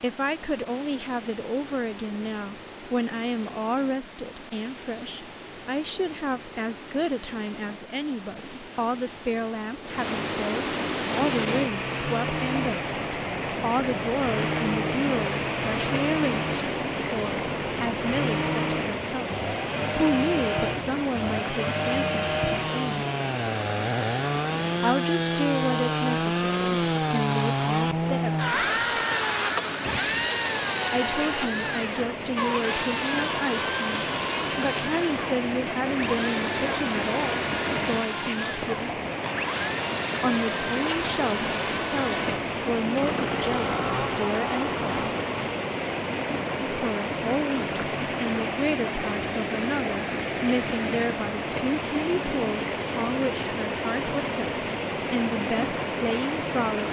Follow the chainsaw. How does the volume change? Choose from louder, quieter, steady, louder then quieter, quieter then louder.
louder then quieter.